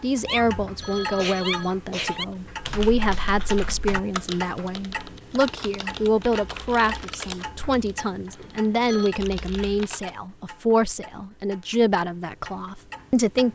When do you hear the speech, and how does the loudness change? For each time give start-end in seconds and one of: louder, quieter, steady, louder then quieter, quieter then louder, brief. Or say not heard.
0.0-13.5 steady.